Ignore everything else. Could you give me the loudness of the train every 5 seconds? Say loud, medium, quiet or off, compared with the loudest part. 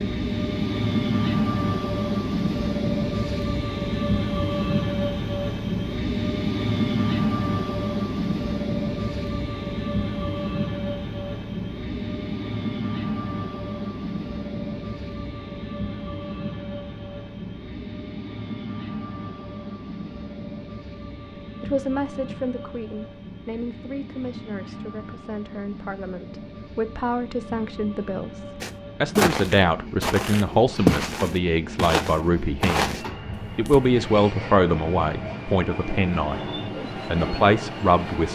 loud, loud, medium, medium, quiet, quiet, medium, medium.